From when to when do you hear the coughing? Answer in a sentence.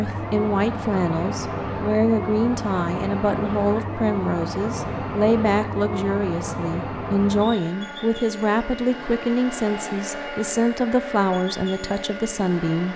You can't hear the coughing here.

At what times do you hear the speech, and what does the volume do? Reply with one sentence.
The speech can be heard from 0.0 to 12.9 s, at a steady volume.